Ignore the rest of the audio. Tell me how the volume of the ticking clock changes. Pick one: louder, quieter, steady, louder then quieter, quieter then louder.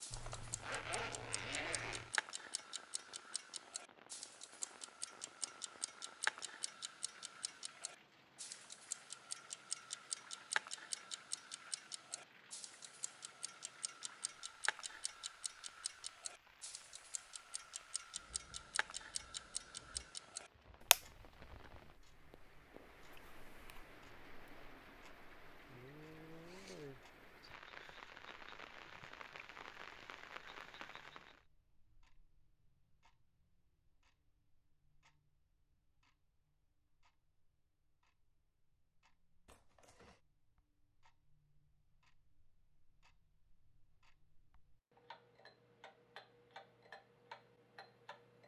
quieter then louder.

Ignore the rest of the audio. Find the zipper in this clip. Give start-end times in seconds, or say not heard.
0.1-2.1, 26.3-26.9, 39.5-40.2.